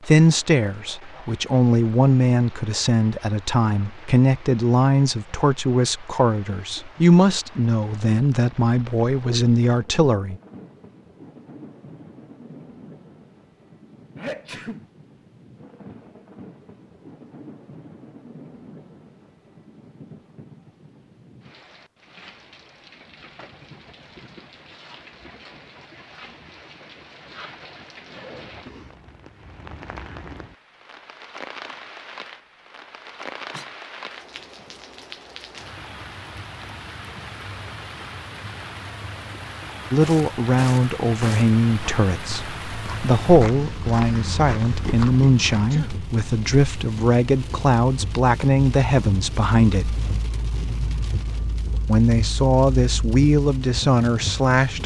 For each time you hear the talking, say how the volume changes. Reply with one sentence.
You can hear the talking from 0.1 to 10.3 s, at a steady volume; from 39.9 to 50.0 s, at a steady volume; and briefly from 51.9 to 54.8 s.